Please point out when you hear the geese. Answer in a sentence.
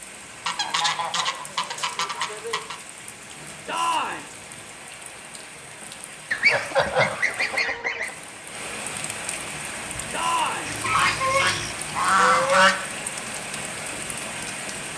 The geese can be heard from 0.5 to 2.8 s, from 6.3 to 8.1 s and from 10.7 to 12.8 s.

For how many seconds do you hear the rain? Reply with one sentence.
The rain can be heard for 15 seconds in total.